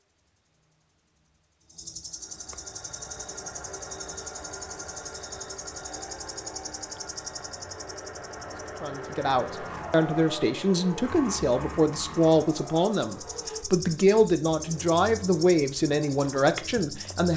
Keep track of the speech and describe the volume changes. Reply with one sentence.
The loudness of the speech stays about the same.